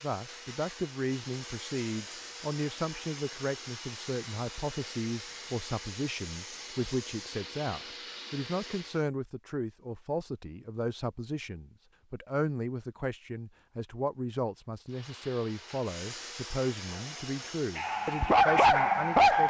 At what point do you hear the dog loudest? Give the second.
19 s.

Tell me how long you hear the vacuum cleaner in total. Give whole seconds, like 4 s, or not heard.
13 s.